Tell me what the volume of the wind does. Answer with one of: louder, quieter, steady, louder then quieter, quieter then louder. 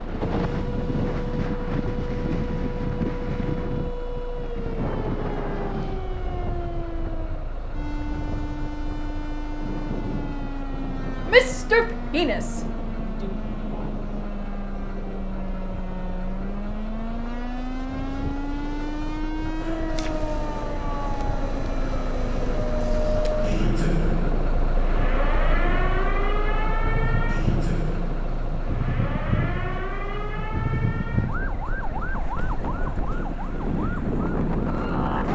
quieter then louder.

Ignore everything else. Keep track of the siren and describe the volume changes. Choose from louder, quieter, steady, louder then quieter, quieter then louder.
louder then quieter.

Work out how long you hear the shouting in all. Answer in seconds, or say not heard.
2 s.